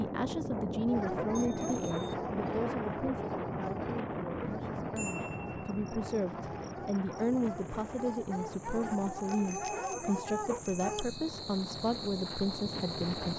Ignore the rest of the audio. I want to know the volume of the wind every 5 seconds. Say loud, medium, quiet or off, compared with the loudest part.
loud, medium, medium.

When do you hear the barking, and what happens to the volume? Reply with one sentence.
You can hear the barking from 0.8 to 11.1 s, getting quieter then louder.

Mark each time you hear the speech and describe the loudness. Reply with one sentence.
The speech can be heard from 0.0 to 13.3 s, getting quieter then louder.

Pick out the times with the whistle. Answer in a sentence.
You can't hear the whistle here.